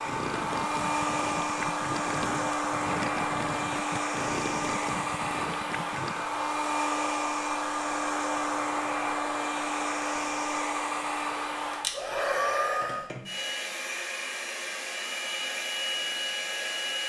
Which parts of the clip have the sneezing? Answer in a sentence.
You can't hear the sneezing here.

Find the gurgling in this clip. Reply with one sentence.
You can hear the gurgling from 0.1 to 6.2 s.